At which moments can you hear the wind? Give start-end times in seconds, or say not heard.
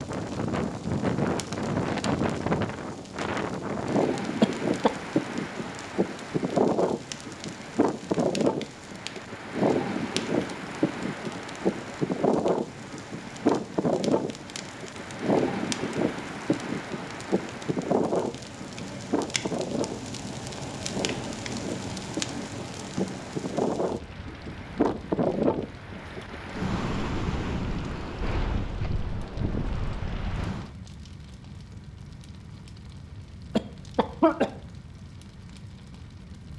0.0-30.7.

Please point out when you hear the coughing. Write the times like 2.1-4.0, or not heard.
4.4-4.9, 33.5-34.5.